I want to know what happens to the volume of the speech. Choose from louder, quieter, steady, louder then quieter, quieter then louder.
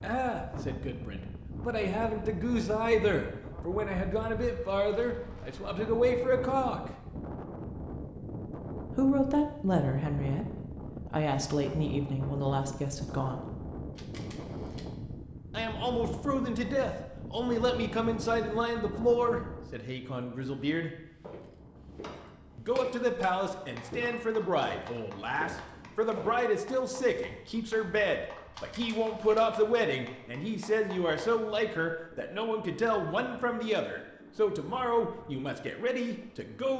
steady.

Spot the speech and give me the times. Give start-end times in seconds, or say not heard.
0.0-6.9, 8.9-13.4, 15.6-20.9, 22.6-36.7.